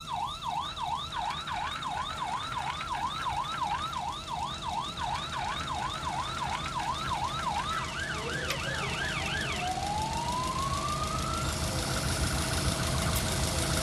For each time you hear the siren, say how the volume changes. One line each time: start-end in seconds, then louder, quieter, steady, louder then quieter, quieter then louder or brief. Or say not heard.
0.0-13.7 steady.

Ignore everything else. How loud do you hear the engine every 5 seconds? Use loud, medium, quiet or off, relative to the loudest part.
quiet, medium, loud.